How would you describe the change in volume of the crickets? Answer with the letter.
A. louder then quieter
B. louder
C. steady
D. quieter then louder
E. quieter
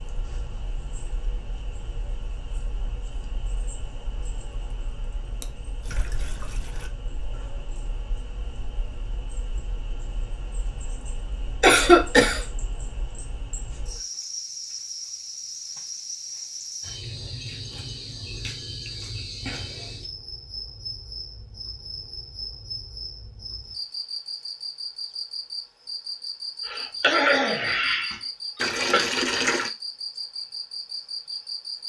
B.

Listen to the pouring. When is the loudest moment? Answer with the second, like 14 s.
29 s.